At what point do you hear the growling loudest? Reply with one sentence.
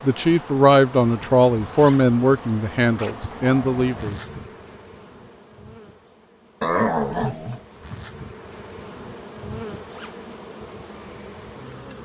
The volume of the growling peaks at 7 seconds.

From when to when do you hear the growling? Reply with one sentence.
The growling can be heard from 3.0 to 4.1 s and from 6.6 to 7.6 s.